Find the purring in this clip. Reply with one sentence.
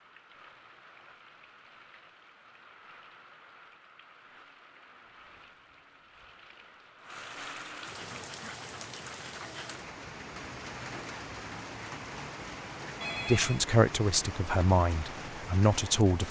The purring can't be heard in this clip.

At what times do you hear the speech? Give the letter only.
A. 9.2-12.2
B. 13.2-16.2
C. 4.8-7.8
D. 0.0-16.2
B.